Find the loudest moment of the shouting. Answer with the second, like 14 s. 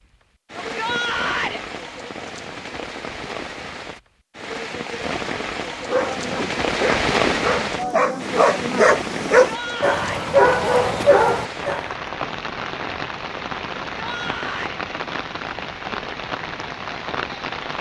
1 s.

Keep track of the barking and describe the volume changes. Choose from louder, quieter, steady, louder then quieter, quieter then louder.
louder.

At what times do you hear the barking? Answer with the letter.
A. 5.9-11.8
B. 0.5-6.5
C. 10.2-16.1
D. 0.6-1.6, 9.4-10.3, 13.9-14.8
A.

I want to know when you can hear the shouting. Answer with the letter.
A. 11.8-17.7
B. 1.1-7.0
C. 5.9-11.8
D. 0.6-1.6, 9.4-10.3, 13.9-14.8
D.